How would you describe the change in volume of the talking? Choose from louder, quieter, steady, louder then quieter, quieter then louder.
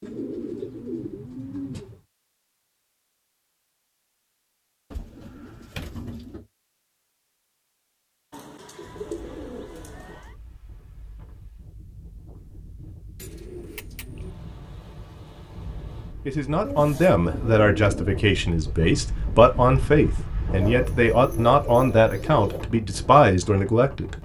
steady.